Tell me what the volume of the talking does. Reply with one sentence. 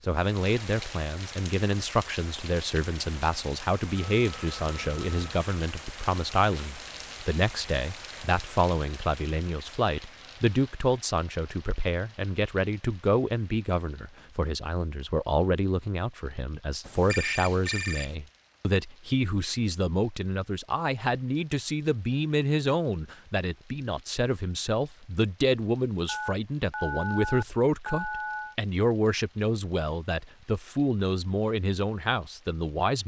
The loudness of the talking stays about the same.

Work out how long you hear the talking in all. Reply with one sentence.
The talking can be heard for 33 seconds in total.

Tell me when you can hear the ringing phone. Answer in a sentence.
The ringing phone can be heard from 4.2 to 5.3 s, from 16.9 to 18.1 s and from 26.1 to 28.6 s.